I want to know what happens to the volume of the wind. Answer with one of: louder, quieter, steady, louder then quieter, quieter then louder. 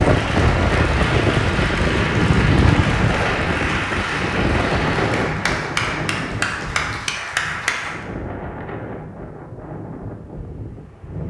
quieter.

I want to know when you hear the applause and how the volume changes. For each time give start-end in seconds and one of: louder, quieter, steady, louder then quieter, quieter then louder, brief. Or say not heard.
0.0-8.1 steady.